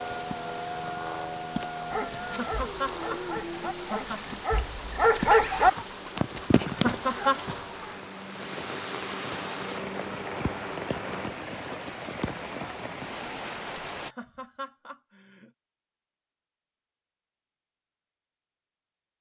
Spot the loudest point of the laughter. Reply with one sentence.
The loudest moment of the laughter is at 7 seconds.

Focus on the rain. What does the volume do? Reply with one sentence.
The volume of the rain stays about the same.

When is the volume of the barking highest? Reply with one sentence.
The loudest moment of the barking is at 5 seconds.